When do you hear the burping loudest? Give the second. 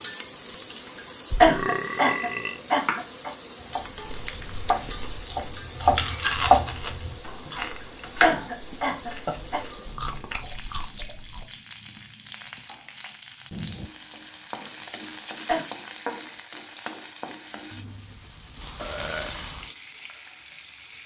2 s.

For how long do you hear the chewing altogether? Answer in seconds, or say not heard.
7 s.